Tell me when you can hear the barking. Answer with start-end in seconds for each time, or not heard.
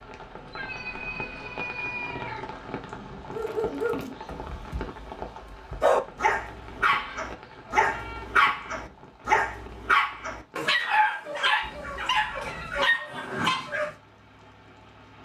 3.3-13.9.